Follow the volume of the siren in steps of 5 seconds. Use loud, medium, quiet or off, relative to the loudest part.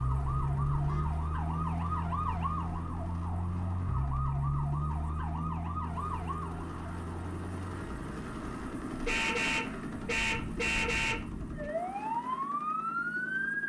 loud, medium, loud.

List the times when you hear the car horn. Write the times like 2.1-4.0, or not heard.
0.5-1.2, 9.1-11.7.